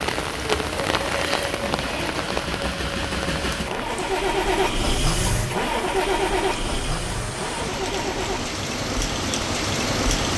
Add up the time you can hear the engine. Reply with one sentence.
You can hear the engine for 7 seconds altogether.